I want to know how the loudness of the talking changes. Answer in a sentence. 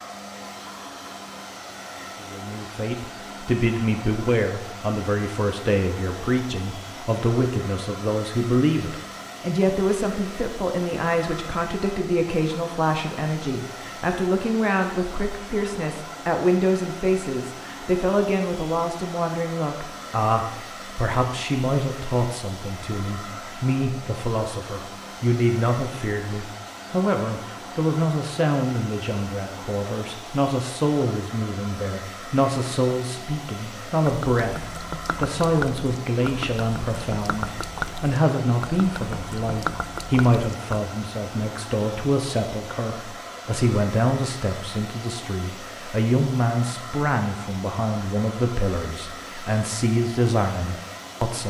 The volume of the talking stays about the same.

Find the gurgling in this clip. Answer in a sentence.
The gurgling can be heard from 34.0 to 40.8 s.